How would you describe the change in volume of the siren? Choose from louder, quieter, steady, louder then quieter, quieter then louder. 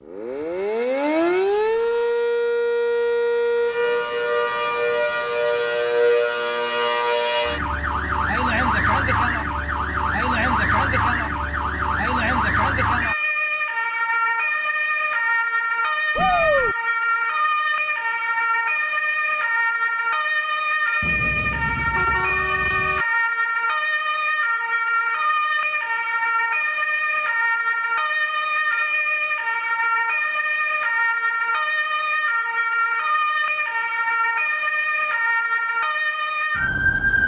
steady.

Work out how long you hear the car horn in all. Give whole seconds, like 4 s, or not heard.
2 s.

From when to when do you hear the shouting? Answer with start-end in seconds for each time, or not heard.
16.1-16.8.